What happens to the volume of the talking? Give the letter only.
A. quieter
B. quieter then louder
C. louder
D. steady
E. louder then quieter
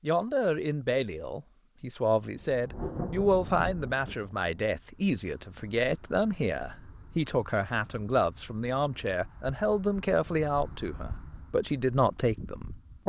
D.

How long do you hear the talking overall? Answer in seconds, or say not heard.
13 s.